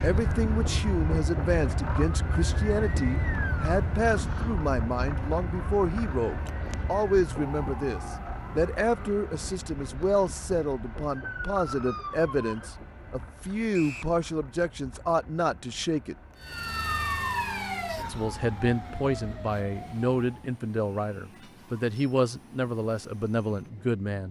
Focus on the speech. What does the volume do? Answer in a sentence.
The volume of the speech stays about the same.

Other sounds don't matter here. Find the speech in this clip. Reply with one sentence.
You can hear the speech from 0.0 to 16.1 s and from 18.1 to 24.2 s.